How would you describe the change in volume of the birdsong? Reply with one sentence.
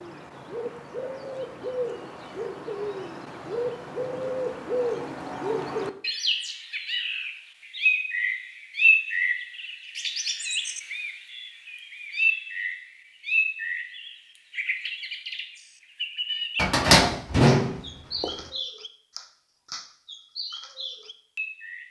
The loudness of the birdsong goes up, then down.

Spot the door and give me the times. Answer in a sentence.
You can hear the door from 16.6 to 18.3 s.